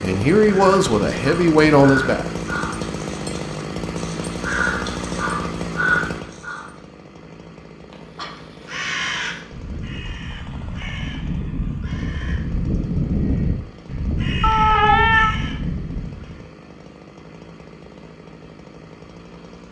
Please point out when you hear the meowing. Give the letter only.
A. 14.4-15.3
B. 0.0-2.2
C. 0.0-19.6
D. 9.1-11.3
A.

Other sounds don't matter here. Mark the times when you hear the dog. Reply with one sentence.
You can't hear the dog here.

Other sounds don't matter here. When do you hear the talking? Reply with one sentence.
You can hear the talking from 0.0 to 2.2 s.